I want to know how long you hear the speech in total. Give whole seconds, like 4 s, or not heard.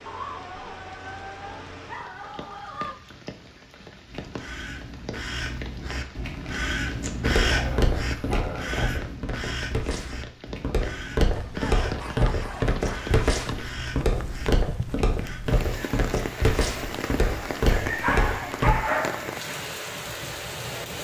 not heard.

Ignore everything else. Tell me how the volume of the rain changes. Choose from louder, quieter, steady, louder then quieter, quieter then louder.
louder.